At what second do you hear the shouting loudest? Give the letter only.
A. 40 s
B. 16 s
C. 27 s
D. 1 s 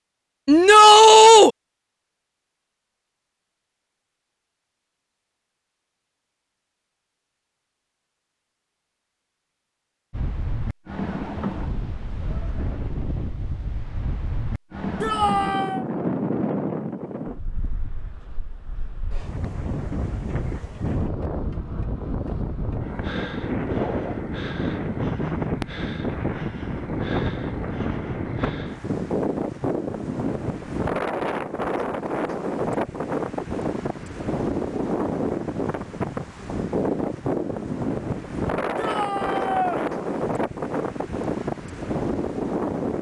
D.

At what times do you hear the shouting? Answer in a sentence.
The shouting can be heard from 0.5 to 1.5 s, from 15.0 to 15.8 s and from 38.8 to 39.8 s.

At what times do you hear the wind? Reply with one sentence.
You can hear the wind from 10.1 to 42.9 s.